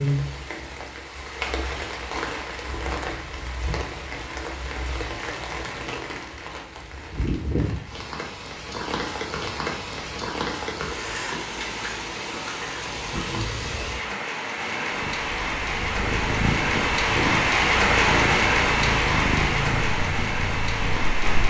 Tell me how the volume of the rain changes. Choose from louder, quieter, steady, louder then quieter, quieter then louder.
louder.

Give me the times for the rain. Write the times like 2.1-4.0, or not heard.
0.0-21.4.